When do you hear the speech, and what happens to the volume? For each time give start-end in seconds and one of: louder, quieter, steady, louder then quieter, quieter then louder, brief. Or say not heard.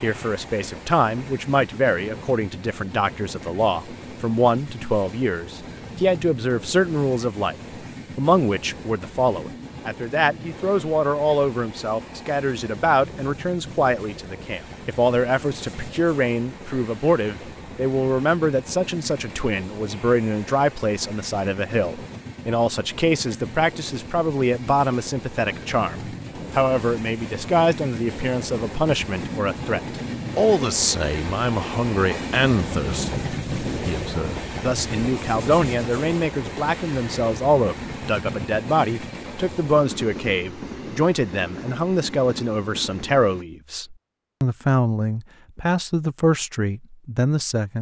0.0-7.5 steady
8.2-47.7 steady.